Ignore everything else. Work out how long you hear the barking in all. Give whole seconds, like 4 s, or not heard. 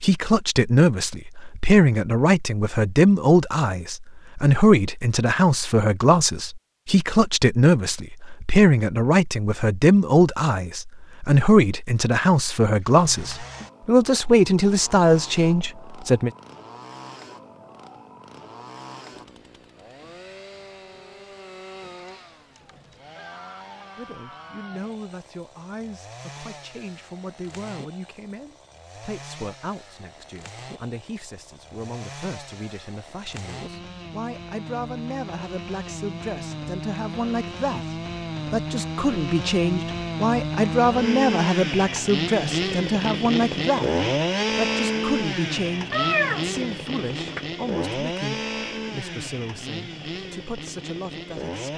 not heard.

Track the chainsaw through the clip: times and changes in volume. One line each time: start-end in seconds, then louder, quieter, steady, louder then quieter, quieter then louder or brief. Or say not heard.
12.8-51.7 louder.